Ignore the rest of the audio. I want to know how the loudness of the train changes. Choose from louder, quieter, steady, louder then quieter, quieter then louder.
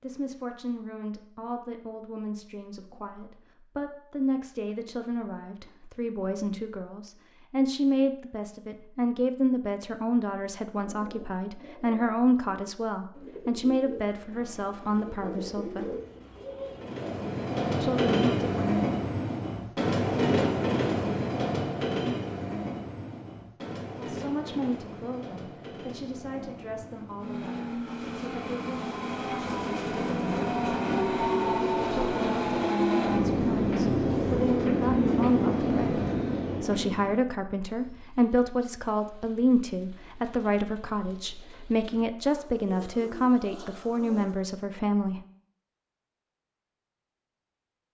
quieter then louder.